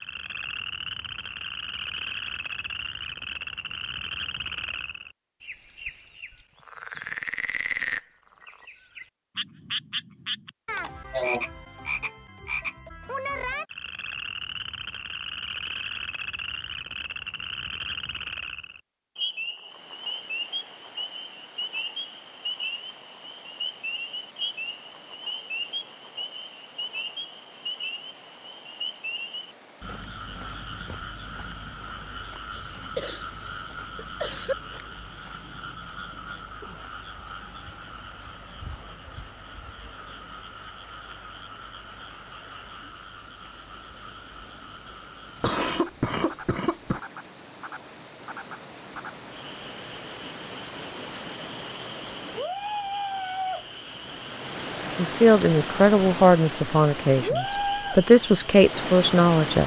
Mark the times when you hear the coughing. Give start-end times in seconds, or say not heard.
10.8-11.4, 32.5-33.3, 34.0-34.5, 45.4-47.0.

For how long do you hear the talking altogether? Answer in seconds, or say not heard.
5 s.